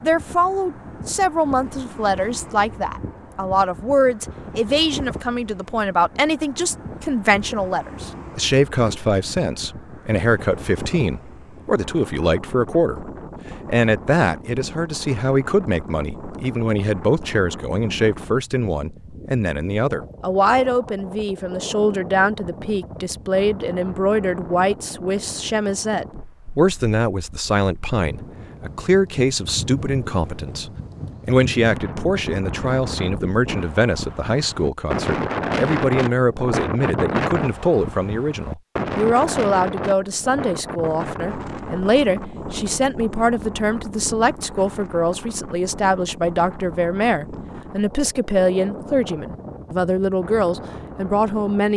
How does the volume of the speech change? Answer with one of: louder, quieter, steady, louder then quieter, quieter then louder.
steady.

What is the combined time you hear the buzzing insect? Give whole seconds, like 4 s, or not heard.
not heard.